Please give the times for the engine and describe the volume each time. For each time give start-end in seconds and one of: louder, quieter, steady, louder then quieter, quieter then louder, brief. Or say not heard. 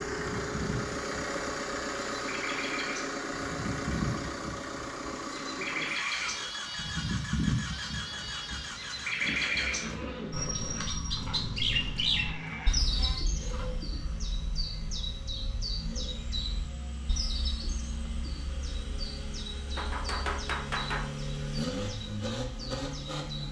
0.0-23.4 quieter then louder.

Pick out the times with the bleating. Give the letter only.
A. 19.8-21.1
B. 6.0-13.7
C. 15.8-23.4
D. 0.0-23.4
B.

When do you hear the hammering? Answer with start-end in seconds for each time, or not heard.
19.8-21.1.